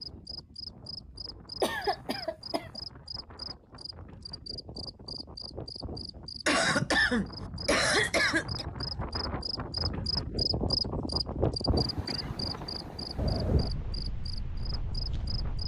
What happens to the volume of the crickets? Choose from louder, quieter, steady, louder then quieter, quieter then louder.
louder then quieter.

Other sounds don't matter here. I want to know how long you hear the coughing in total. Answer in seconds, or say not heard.
4 s.